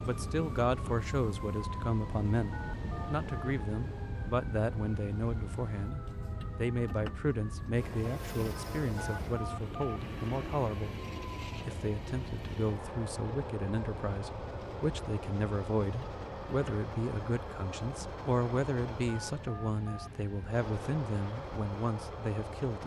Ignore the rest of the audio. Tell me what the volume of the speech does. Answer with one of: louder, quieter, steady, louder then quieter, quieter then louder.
steady.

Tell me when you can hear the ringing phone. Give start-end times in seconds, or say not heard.
2.5-3.5, 8.9-10.0, 19.1-20.1.